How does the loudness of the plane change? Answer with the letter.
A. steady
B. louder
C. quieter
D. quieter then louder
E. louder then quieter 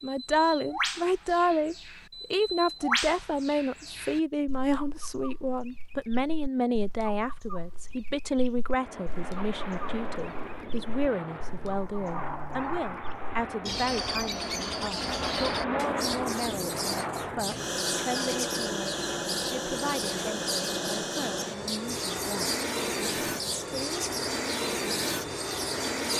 B.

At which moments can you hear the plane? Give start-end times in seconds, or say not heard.
8.7-26.1.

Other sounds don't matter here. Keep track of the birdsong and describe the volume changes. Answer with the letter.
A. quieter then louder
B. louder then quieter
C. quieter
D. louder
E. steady
A.